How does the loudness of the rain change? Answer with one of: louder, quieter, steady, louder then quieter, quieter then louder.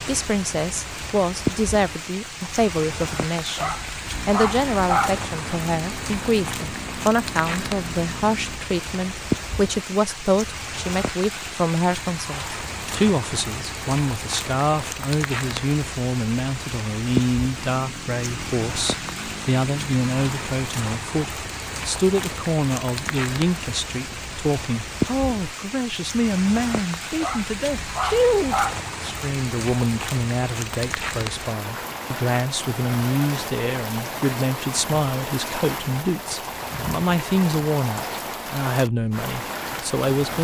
steady.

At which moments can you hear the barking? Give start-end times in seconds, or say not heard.
3.5-5.2, 27.2-28.9.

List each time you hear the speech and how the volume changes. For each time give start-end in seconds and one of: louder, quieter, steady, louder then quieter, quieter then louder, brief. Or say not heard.
0.0-40.4 steady.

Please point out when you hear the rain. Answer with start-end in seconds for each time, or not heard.
0.0-40.4.